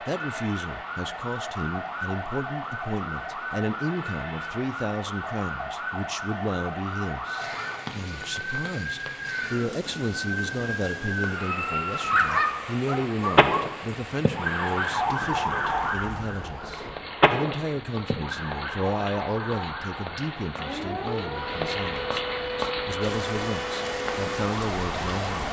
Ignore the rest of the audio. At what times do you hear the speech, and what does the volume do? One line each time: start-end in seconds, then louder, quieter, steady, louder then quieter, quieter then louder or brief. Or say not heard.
0.0-25.4 steady.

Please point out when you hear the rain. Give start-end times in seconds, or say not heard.
7.3-25.4.